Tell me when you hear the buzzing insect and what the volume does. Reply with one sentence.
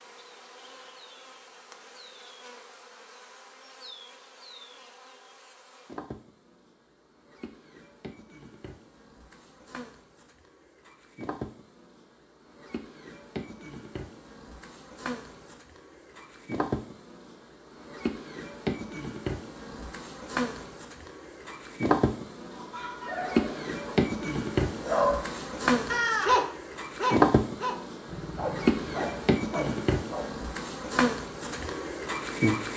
The buzzing insect can be heard from 0.0 to 32.7 s, getting louder.